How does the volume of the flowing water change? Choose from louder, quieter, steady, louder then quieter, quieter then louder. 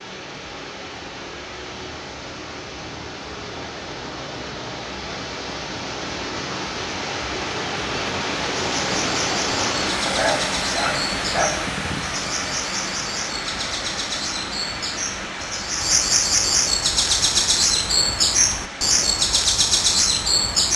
louder then quieter.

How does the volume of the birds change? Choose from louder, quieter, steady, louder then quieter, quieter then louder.
louder.